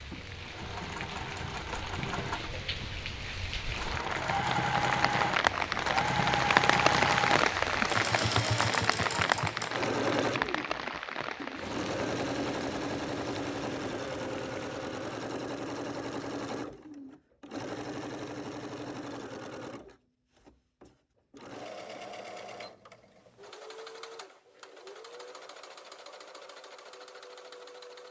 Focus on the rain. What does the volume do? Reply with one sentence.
The volume of the rain goes up, then down.